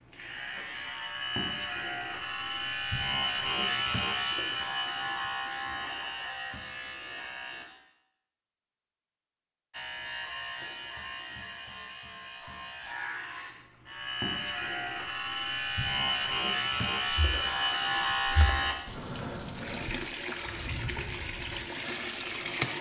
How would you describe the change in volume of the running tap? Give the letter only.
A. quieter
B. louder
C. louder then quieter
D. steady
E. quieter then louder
B.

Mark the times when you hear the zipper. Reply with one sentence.
You can't hear the zipper here.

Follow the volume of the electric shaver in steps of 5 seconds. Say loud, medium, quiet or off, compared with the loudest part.
loud, medium, medium, loud, off.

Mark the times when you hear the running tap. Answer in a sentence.
The running tap can be heard from 17.3 to 22.7 s.